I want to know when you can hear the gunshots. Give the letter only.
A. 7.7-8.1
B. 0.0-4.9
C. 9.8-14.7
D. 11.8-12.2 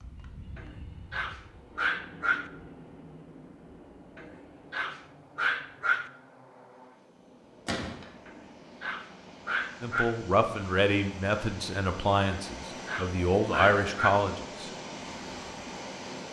A.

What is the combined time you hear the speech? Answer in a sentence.
The speech can be heard for 5 seconds in total.